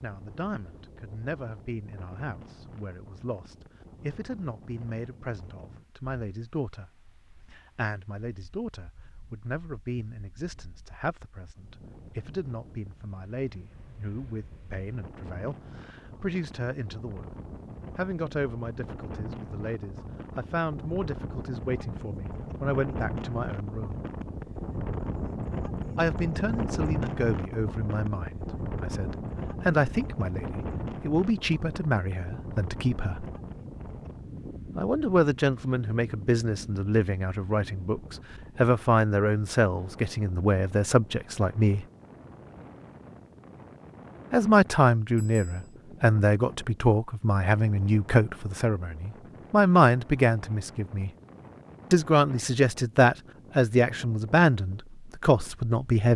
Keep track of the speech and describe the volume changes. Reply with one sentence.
The volume of the speech goes up.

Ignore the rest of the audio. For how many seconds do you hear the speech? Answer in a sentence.
You can hear the speech for 49 seconds altogether.